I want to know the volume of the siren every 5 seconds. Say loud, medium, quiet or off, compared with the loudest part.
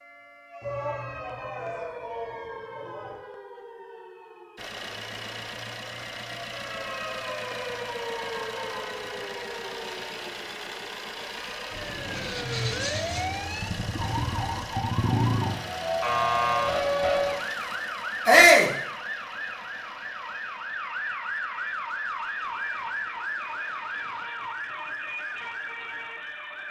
quiet, medium, medium, loud, medium, medium.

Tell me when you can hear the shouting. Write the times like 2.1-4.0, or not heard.
0.6-3.1, 18.2-18.7.